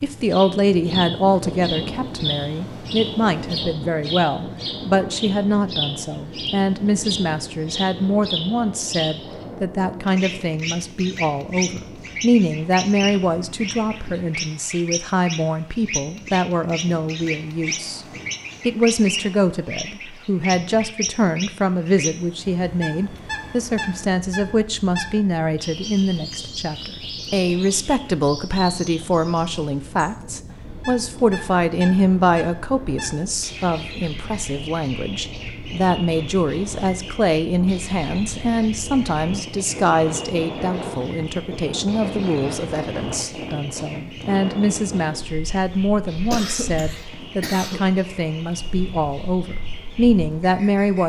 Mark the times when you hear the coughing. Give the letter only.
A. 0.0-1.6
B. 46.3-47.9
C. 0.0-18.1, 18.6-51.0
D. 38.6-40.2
B.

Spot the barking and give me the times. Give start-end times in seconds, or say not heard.
not heard.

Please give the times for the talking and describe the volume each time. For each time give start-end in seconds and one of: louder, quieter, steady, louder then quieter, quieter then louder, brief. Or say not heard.
0.0-18.1 steady
18.6-51.0 steady.